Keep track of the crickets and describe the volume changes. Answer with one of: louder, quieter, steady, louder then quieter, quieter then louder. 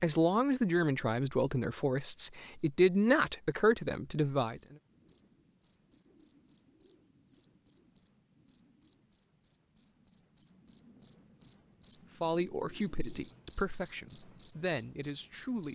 louder.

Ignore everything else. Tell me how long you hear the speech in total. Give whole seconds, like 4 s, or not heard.
8 s.